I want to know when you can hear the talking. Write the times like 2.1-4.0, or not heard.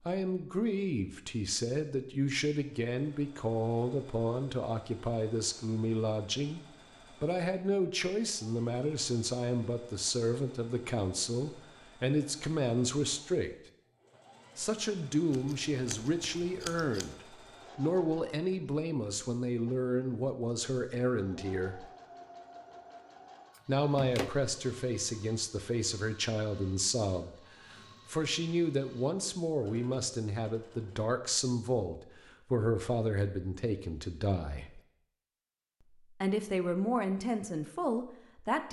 0.0-13.5, 14.6-21.9, 23.6-34.8, 36.2-38.6.